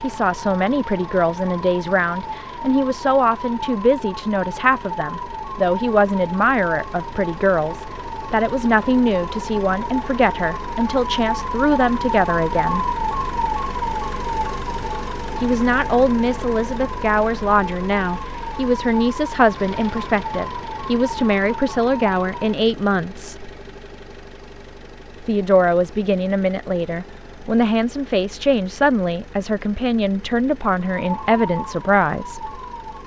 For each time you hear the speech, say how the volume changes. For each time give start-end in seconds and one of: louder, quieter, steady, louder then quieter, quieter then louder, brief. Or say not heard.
0.0-12.8 steady
15.4-23.5 steady
25.2-32.5 steady.